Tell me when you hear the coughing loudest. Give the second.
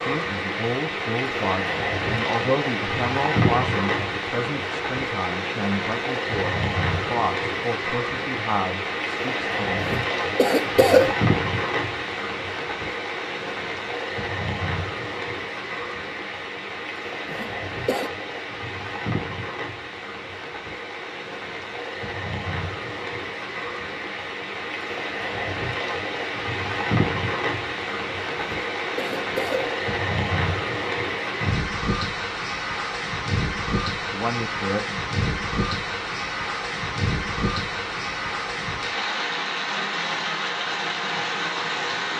11 s.